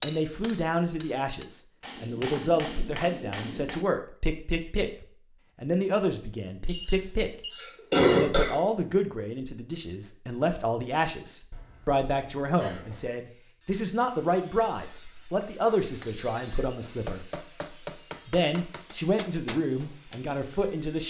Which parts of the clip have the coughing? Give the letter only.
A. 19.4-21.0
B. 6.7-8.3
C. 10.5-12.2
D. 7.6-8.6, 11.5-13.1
D.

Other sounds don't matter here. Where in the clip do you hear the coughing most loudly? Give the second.
8 s.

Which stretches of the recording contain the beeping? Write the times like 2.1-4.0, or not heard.
6.7-8.3.